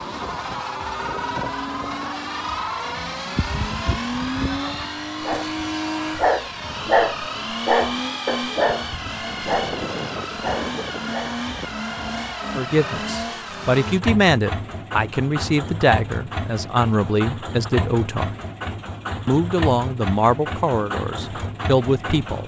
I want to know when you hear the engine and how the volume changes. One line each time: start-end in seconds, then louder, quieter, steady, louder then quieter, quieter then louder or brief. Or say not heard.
0.0-22.4 steady.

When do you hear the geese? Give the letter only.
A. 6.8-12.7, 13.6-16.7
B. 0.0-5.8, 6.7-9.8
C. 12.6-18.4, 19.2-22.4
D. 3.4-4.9
D.